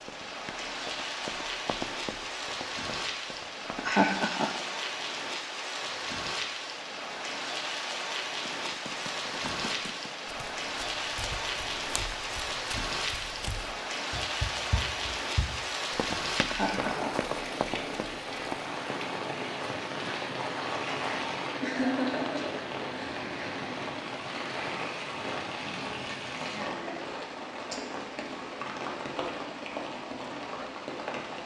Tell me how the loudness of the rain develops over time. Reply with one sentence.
The loudness of the rain stays about the same.